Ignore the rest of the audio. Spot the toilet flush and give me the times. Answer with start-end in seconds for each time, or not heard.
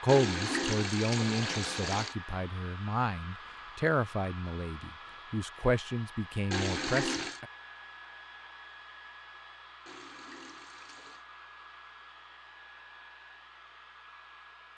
0.1-2.1, 6.5-7.4, 9.8-11.2.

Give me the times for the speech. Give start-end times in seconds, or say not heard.
0.0-7.5.